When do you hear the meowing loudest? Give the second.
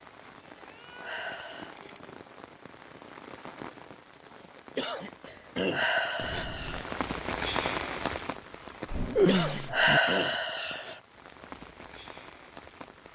9 s.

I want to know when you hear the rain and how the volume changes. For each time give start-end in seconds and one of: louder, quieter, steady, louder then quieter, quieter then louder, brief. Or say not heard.
0.0-13.0 louder then quieter.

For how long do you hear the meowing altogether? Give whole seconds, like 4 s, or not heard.
4 s.